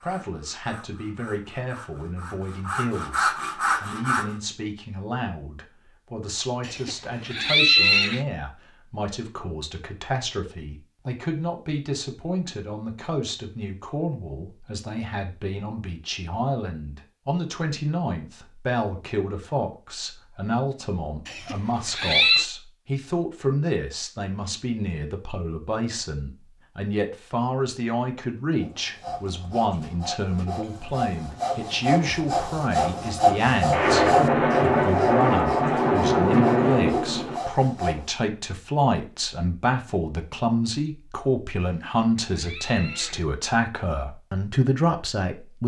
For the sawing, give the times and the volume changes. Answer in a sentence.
You can hear the sawing from 0.0 to 4.3 s, getting louder; and from 28.6 to 38.1 s, getting louder then quieter.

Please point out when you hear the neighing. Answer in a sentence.
You can hear the neighing from 6.7 to 8.2 s, from 21.2 to 22.4 s and from 41.6 to 43.2 s.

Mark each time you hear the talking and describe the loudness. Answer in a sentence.
The talking can be heard from 0.0 to 45.6 s, getting louder.